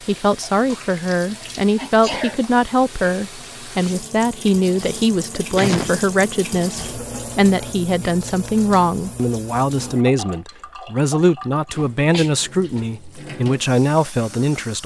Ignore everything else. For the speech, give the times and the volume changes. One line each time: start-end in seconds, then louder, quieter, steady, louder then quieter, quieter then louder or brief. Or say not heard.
0.1-14.8 steady.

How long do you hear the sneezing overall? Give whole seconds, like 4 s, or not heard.
2 s.